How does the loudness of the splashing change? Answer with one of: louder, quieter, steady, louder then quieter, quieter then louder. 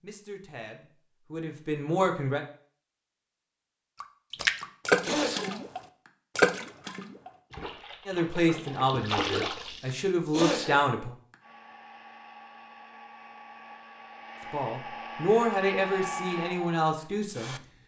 quieter then louder.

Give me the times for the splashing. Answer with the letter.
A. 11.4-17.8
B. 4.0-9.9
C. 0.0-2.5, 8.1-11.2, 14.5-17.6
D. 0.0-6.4
B.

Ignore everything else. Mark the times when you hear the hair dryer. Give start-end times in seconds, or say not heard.
11.4-17.8.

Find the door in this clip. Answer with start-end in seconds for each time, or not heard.
not heard.